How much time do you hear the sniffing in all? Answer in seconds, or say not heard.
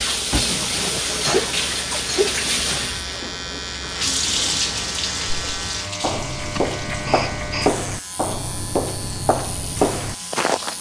4 s.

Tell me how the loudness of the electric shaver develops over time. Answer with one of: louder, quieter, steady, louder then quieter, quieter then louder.
quieter.